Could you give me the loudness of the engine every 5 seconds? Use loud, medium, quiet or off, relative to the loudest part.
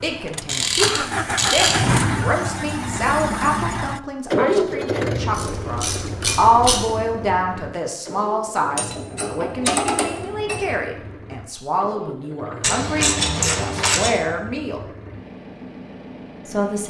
loud, medium, quiet, quiet.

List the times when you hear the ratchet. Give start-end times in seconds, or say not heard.
0.5-1.8, 5.3-6.8, 8.8-10.8, 12.6-14.2.